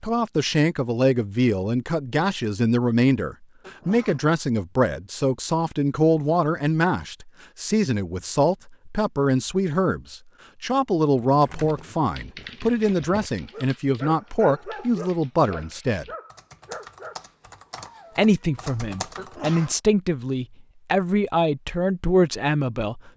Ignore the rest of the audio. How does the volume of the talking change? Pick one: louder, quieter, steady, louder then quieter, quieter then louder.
steady.